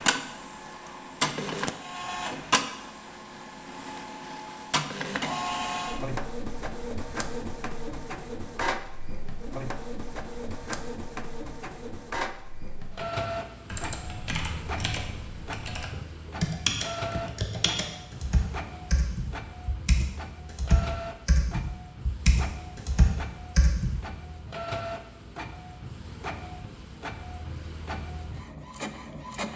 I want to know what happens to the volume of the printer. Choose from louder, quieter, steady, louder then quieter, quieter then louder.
quieter.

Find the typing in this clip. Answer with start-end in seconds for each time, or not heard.
13.7-24.0.